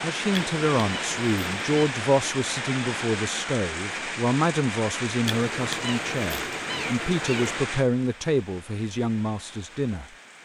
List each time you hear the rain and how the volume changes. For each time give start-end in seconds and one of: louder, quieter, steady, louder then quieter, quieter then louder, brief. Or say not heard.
0.0-10.4 quieter.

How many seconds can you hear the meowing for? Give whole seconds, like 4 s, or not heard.
4 s.